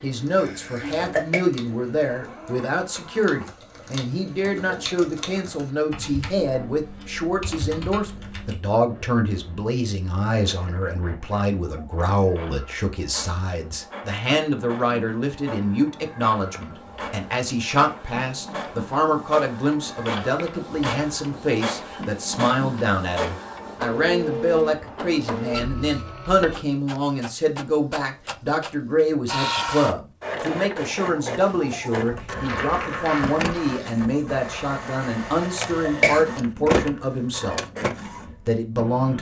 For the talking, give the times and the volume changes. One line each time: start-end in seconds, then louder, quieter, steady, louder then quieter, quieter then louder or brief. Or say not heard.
0.0-37.6 steady
38.4-39.1 brief.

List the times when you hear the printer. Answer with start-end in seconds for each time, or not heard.
0.0-39.1.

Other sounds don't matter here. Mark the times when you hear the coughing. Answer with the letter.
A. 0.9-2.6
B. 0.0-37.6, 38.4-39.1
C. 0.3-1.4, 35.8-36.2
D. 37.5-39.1
C.